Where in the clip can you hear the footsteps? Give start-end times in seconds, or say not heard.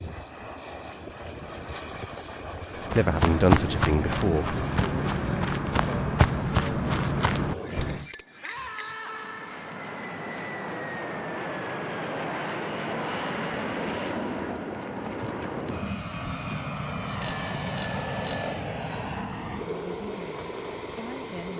2.8-8.1.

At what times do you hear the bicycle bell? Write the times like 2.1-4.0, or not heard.
7.7-8.9, 17.2-18.6.